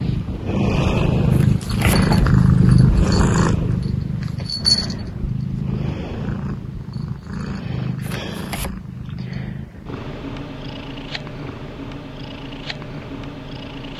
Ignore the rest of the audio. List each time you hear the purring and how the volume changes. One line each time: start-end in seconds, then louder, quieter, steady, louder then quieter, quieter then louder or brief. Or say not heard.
0.0-13.9 quieter.